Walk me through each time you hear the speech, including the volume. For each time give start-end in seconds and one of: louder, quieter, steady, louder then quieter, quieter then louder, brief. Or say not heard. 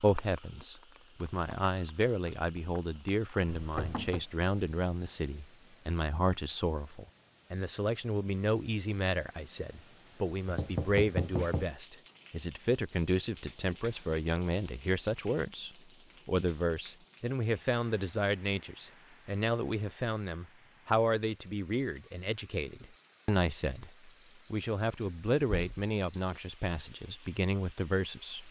0.0-28.4 steady.